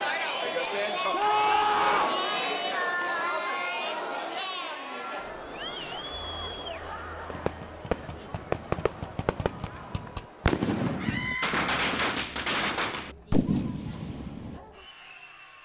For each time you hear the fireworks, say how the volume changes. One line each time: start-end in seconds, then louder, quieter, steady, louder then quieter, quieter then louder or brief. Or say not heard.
7.3-14.6 quieter then louder.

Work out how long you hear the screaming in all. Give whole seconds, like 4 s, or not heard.
4 s.